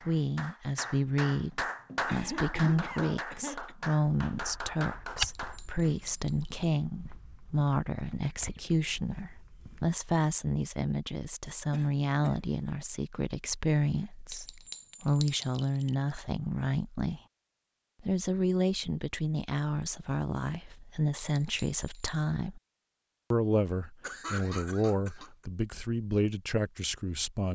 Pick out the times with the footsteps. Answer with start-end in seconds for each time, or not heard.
4.3-10.0.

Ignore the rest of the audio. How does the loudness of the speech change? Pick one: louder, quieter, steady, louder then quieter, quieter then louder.
steady.